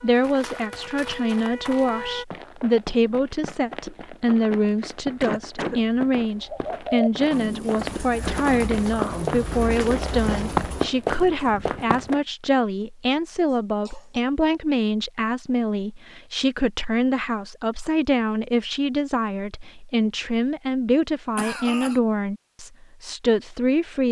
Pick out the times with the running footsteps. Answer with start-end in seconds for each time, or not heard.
0.1-12.2.